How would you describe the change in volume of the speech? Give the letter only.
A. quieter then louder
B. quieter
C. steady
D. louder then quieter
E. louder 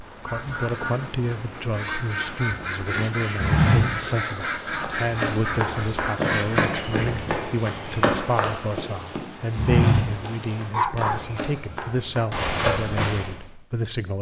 C.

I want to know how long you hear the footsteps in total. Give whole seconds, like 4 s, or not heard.
11 s.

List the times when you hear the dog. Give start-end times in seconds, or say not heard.
10.2-11.2.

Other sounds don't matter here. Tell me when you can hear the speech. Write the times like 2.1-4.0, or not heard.
0.2-14.1.